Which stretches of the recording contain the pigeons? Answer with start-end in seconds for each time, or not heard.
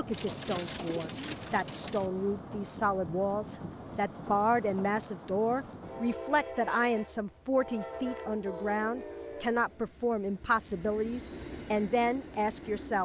0.1-2.1.